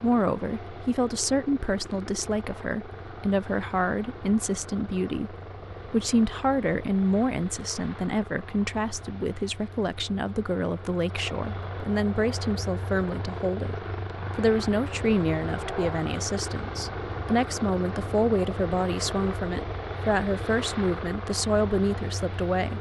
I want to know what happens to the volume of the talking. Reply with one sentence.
The volume of the talking stays about the same.